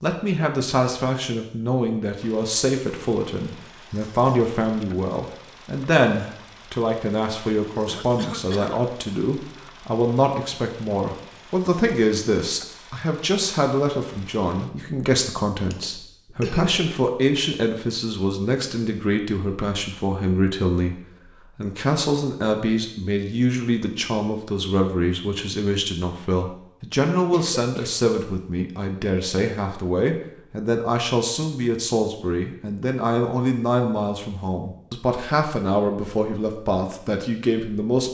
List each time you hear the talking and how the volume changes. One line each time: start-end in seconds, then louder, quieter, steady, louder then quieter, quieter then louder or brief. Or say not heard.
0.0-38.0 steady.